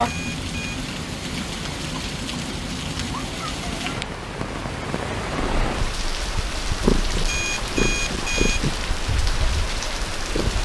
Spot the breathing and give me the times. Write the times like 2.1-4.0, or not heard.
not heard.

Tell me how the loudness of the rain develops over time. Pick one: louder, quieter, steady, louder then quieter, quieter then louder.
steady.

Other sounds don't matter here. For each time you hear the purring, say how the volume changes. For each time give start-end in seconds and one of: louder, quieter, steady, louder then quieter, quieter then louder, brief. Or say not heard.
5.3-10.6 louder then quieter.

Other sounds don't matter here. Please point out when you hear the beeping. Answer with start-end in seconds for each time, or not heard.
0.0-0.8, 7.2-8.7.